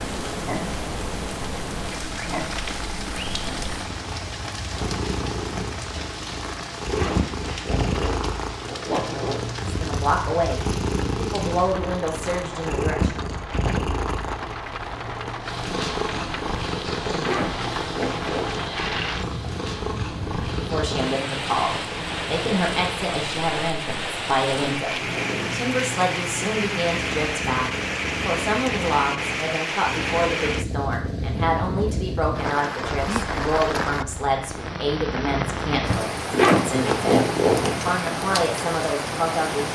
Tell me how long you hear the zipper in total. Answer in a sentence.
The zipper can be heard for 6 seconds in total.